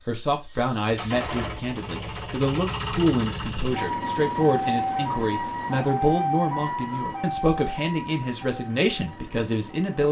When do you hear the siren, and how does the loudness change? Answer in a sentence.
You can hear the siren from 3.8 to 9.8 s, getting quieter.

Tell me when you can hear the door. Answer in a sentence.
The door can't be heard in this clip.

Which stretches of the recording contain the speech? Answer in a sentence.
The speech can be heard from 0.1 to 10.0 s.